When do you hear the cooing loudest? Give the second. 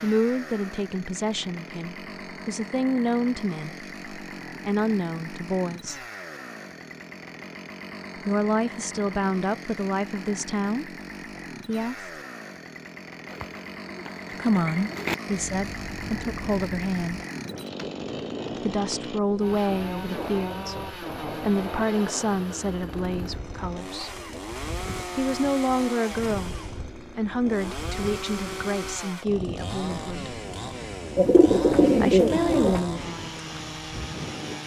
32 s.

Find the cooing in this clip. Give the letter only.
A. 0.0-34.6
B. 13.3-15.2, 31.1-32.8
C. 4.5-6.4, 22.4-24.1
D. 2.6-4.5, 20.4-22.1
B.